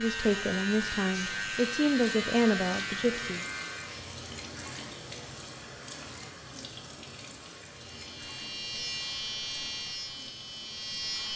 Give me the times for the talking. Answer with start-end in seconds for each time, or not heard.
0.0-3.5.